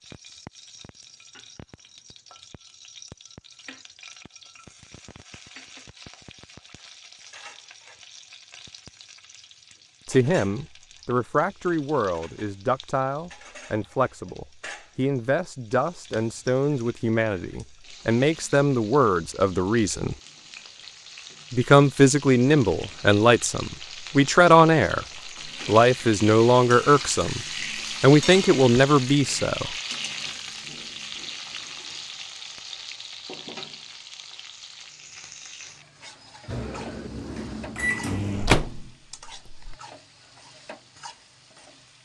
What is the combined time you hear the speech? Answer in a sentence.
The speech can be heard for 17 seconds in total.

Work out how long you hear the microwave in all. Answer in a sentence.
You can hear the microwave for 3 seconds altogether.